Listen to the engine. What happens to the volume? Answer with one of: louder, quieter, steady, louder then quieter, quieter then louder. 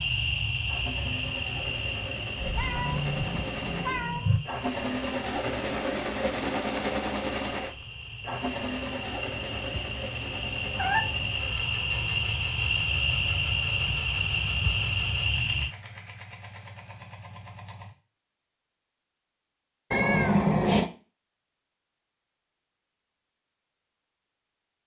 louder then quieter.